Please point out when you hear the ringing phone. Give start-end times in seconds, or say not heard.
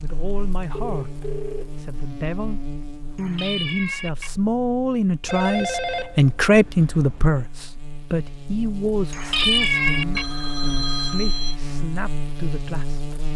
0.7-1.8, 5.2-7.3, 10.2-11.6.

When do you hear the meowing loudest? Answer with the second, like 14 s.
10 s.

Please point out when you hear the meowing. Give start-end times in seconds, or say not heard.
3.1-4.3, 9.1-10.2.